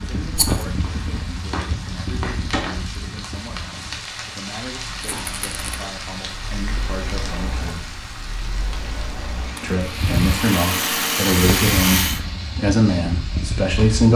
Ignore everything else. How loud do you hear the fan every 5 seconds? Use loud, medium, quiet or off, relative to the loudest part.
loud, medium, loud.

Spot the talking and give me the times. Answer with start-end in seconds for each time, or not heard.
0.0-8.0, 9.6-14.1.